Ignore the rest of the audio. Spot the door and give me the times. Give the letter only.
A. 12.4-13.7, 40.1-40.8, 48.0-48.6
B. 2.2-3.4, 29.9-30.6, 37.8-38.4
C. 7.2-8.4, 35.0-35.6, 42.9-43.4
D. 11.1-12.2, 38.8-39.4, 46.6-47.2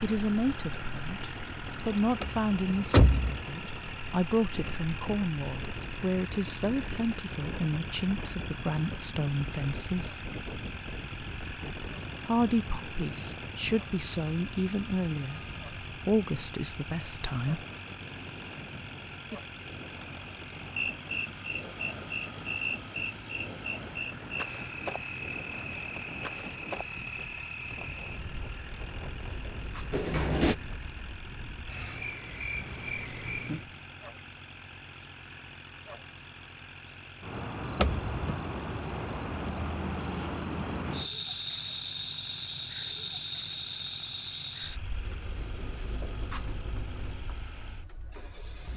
B.